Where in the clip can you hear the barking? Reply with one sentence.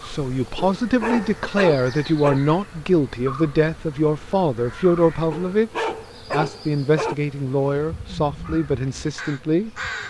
The barking can be heard from 0.6 to 2.4 s and from 5.3 to 7.2 s.